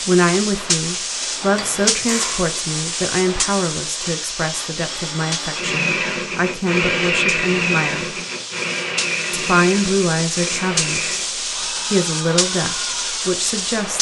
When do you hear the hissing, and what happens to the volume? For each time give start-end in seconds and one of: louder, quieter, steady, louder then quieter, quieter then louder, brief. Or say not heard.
0.0-13.9 quieter then louder.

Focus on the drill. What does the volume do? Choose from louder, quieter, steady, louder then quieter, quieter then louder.
louder then quieter.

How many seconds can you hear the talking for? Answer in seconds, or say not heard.
12 s.